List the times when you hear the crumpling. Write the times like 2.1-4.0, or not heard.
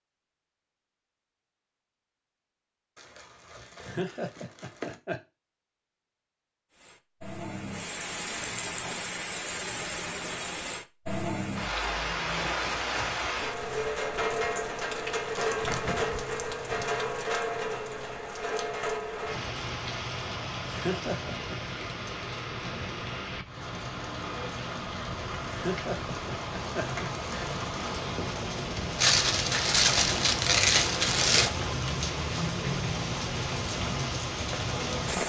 3.0-5.0, 15.2-16.9, 28.9-31.5.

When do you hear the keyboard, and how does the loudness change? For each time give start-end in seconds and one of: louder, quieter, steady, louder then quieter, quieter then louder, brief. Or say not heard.
not heard.